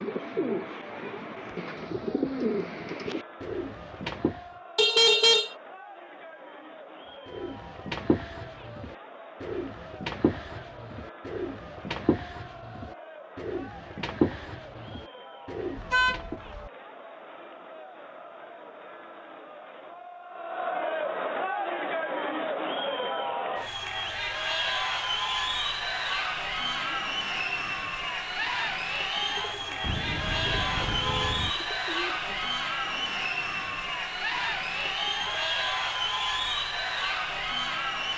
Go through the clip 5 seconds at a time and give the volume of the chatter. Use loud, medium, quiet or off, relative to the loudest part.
quiet, quiet, quiet, quiet, loud, loud, loud, loud.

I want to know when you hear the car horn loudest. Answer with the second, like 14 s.
5 s.